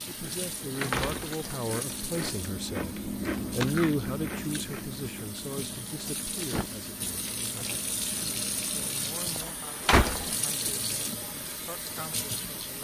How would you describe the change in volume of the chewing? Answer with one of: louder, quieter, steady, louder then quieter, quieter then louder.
louder then quieter.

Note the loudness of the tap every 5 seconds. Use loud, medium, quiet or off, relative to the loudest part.
medium, loud, loud.